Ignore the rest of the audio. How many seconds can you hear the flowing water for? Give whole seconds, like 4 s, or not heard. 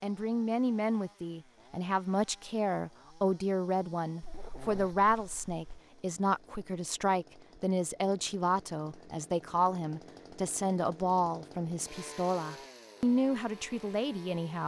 not heard.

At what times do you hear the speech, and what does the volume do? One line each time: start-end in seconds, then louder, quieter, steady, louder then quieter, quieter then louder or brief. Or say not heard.
0.0-14.6 steady.